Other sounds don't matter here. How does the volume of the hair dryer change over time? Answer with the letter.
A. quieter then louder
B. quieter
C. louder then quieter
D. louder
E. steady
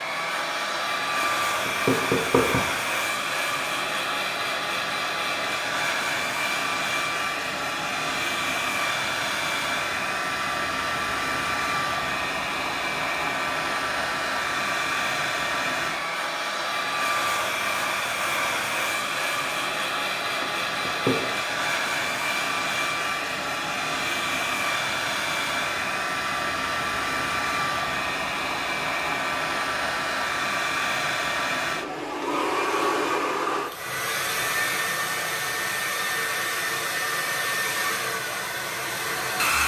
E.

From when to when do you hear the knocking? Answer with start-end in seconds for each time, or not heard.
1.2-2.6, 20.4-21.4.